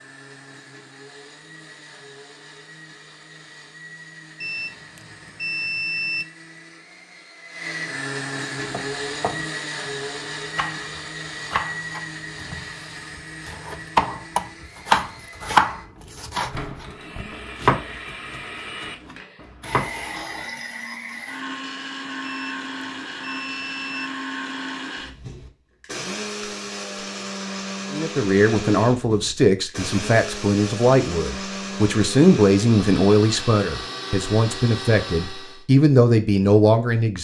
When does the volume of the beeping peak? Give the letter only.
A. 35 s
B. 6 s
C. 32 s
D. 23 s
B.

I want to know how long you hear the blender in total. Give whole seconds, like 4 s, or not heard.
36 s.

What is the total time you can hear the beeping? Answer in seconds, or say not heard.
4 s.